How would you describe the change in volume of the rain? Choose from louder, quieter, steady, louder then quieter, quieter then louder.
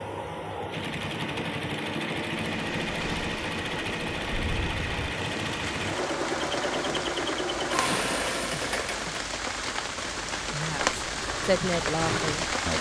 louder.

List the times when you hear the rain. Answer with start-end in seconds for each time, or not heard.
2.5-12.7.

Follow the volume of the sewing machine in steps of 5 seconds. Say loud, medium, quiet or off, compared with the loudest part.
loud, loud, medium.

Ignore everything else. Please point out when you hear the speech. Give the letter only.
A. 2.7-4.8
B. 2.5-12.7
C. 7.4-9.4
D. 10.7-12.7
D.